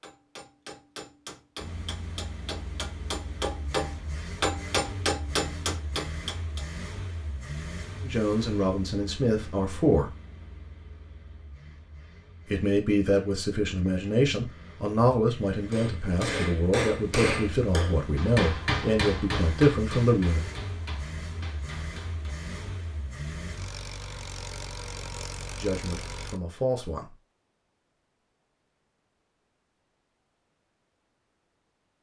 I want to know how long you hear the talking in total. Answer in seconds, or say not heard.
12 s.